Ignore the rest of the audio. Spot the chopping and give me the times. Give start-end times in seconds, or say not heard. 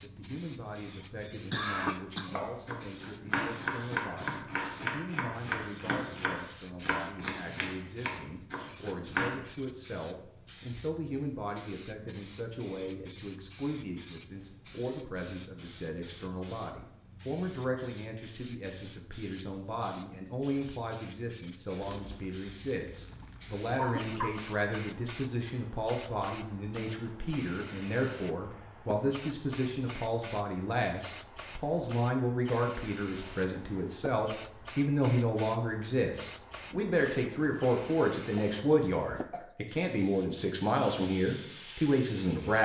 2.2-9.3.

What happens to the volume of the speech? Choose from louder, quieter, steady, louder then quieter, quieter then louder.
louder.